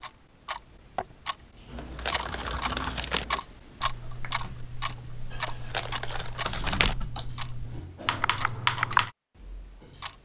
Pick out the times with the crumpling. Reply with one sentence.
You can hear the crumpling from 1.8 to 3.2 s and from 5.5 to 7.0 s.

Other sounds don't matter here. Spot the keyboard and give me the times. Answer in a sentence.
You can hear the keyboard from 1.7 to 9.1 s.